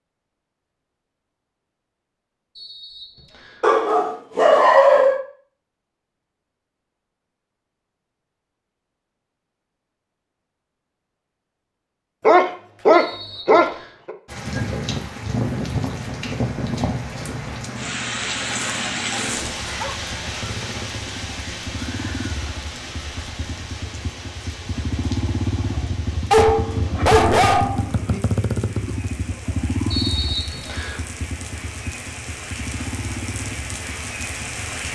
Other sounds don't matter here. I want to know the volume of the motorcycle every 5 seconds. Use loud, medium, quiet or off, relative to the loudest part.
off, off, off, medium, medium, loud, medium.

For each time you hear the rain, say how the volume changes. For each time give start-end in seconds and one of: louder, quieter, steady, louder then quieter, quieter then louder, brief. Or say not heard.
14.2-34.8 quieter then louder.